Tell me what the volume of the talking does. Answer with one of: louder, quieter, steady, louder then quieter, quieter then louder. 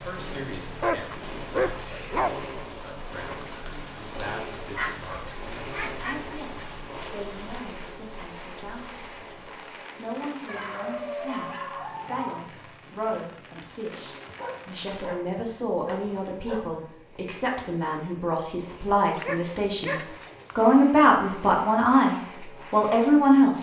louder.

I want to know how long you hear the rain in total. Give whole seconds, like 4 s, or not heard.
15 s.